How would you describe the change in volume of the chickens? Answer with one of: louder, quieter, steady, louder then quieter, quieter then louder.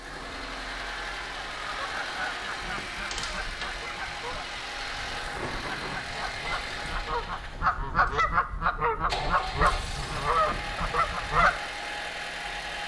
louder.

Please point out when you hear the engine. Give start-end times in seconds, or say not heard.
0.0-12.8.